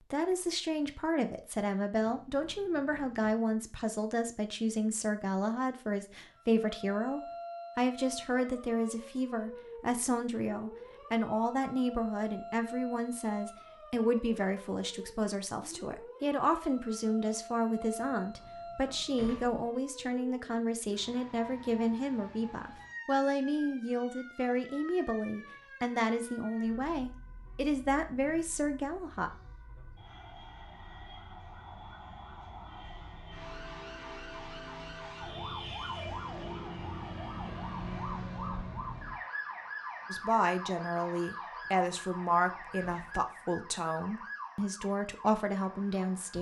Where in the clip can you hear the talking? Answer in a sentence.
The talking can be heard from 0.1 to 29.3 s and from 40.1 to 46.3 s.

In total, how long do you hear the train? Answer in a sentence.
You can't hear the train here.